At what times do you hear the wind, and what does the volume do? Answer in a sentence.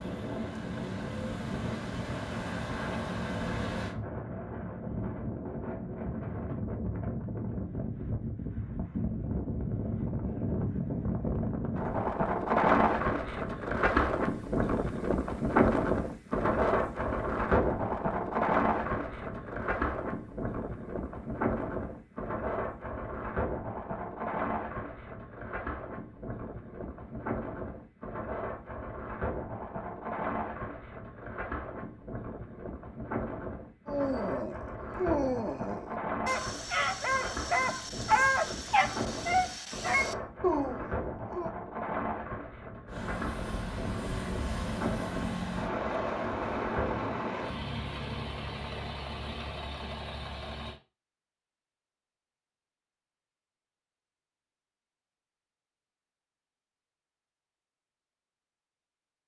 You can hear the wind from 0.0 to 47.5 s, getting louder then quieter.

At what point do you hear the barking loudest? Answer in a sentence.
The volume of the barking peaks at 38 seconds.